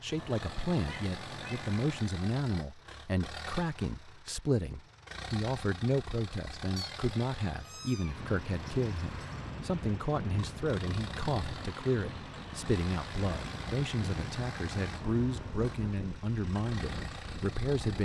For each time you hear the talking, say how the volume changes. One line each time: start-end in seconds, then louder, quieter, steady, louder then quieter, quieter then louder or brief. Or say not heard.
0.0-18.0 steady.